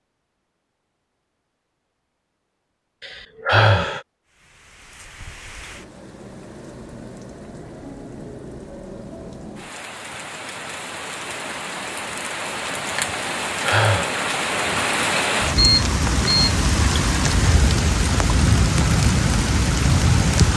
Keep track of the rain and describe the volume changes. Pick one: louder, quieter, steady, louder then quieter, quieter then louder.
louder.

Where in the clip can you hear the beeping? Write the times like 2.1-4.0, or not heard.
15.6-16.6.